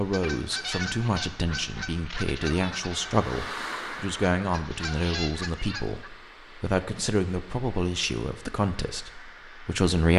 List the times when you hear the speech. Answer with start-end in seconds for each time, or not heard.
0.0-10.1.